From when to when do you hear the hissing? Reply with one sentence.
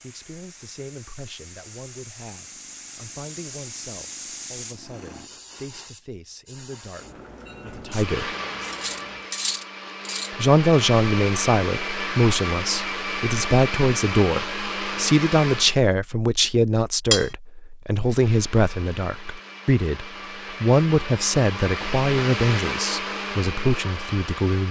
The hissing can be heard from 0.0 to 9.2 s.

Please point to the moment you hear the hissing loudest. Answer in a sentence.
The loudest moment of the hissing is at 4 seconds.